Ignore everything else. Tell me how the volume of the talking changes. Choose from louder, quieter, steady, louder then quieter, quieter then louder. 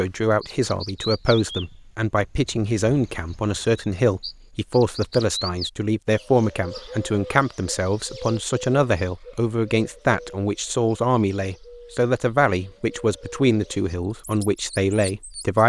steady.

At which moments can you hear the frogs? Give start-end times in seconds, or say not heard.
not heard.